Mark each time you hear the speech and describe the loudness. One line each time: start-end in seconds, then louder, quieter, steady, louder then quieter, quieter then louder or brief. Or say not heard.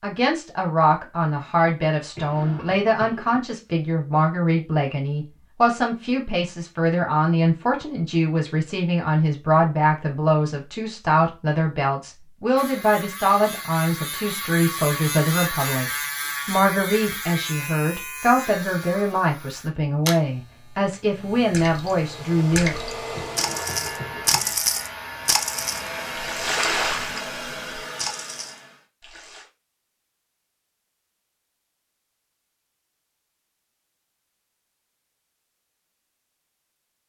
0.0-22.8 steady.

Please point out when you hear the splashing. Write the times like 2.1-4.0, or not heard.
21.4-29.4.